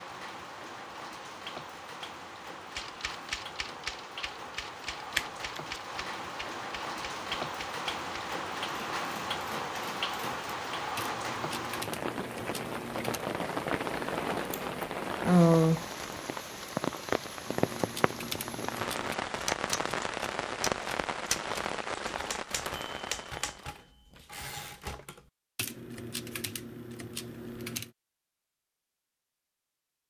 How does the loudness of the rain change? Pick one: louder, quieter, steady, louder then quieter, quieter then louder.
louder.